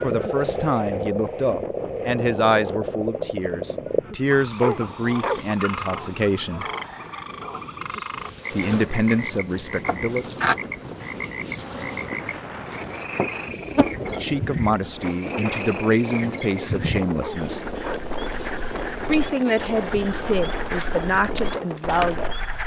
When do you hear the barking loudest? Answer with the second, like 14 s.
5 s.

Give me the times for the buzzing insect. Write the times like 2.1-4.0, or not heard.
7.9-22.6.